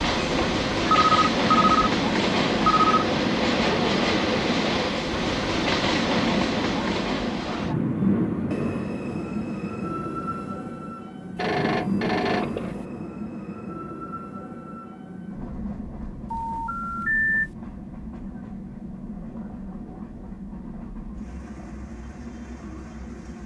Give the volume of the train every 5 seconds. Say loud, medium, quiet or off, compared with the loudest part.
loud, loud, medium, quiet, quiet.